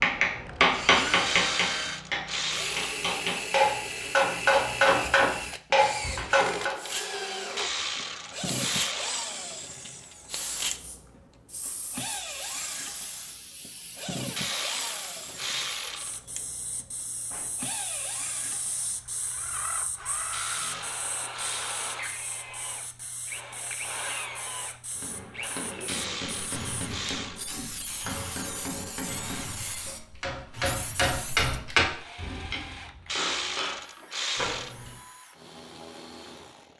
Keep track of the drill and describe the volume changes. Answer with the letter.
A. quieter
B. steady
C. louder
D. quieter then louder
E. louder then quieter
A.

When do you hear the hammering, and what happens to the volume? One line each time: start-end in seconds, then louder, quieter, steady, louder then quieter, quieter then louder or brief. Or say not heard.
0.0-6.8 quieter then louder
24.9-33.9 louder then quieter.